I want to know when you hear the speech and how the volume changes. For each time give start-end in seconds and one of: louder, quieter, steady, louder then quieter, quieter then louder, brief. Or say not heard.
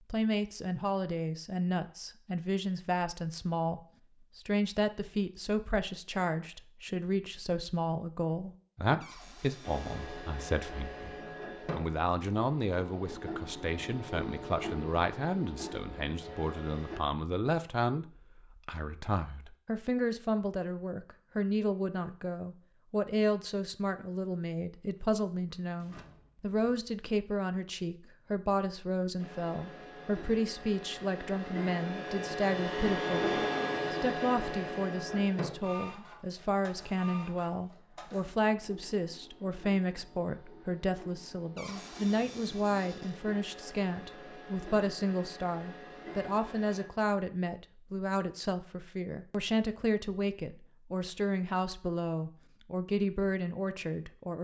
0.1-54.3 steady.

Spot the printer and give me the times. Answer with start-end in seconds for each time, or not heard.
9.6-17.0, 29.1-46.9.